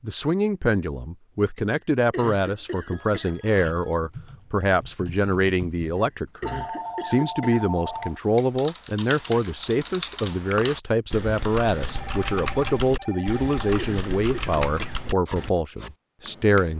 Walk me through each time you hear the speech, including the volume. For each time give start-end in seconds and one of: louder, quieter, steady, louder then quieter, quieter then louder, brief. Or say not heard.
0.0-16.7 steady.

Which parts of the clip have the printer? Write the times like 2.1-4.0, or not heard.
not heard.